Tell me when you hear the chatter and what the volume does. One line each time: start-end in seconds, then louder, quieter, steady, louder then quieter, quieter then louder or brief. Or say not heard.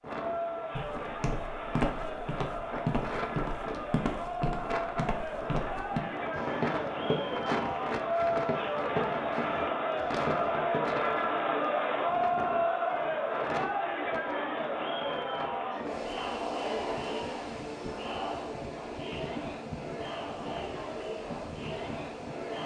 0.0-22.6 louder then quieter.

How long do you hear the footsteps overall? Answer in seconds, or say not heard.
10 s.